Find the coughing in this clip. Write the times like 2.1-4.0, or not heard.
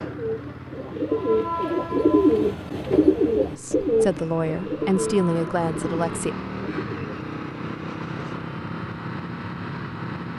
not heard.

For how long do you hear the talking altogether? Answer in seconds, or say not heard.
3 s.